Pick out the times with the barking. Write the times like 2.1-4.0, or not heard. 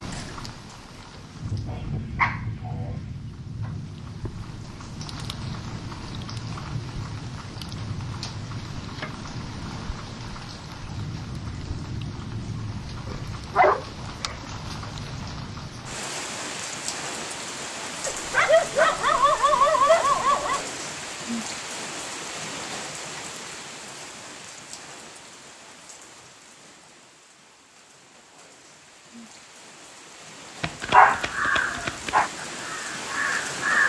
1.7-3.0, 13.1-14.3, 18.1-20.6, 30.6-32.3.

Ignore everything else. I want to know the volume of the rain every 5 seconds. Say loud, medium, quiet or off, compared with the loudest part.
loud, loud, loud, loud, loud, quiet, loud.